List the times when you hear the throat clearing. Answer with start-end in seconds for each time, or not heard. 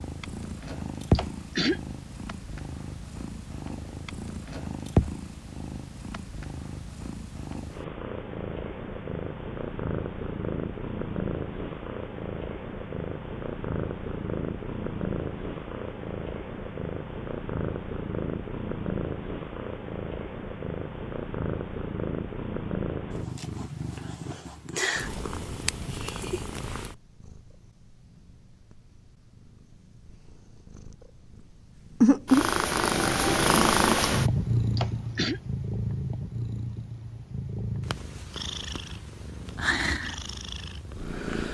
1.1-1.8, 34.8-35.4.